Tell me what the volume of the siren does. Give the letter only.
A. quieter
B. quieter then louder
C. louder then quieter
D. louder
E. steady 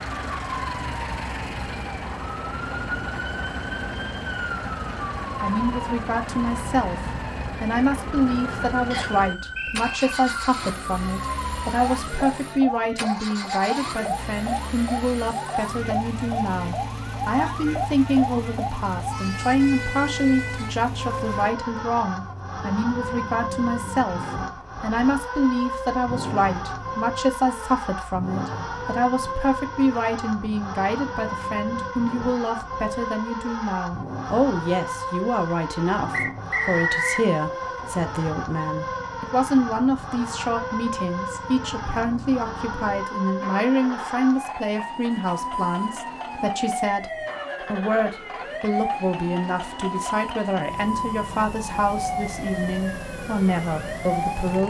E.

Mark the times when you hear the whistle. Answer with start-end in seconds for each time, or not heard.
8.9-9.9, 36.1-37.2.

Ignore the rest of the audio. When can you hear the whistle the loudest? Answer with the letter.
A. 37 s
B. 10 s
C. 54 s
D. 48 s
A.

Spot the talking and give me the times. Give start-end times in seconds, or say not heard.
5.4-54.6.